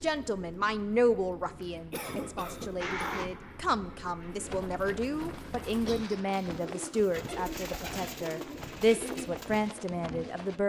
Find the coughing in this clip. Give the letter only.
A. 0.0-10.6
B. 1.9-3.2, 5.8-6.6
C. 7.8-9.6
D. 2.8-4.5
B.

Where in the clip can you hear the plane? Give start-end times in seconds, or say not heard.
2.8-4.5.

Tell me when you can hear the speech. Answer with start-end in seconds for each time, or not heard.
0.0-10.6.